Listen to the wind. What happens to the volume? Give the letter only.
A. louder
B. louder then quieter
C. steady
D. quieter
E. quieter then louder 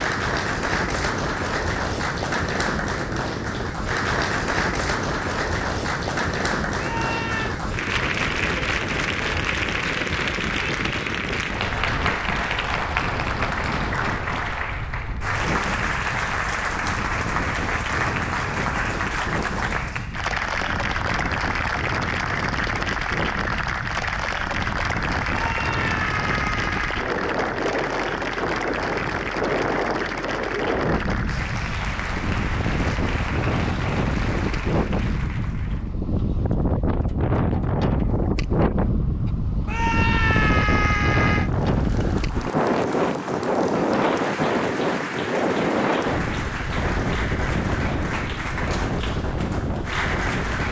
A.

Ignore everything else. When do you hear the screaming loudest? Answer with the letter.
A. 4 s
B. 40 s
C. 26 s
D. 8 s
B.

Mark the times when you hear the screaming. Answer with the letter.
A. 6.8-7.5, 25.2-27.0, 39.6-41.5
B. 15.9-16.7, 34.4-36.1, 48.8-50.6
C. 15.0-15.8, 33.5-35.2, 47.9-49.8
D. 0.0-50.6
A.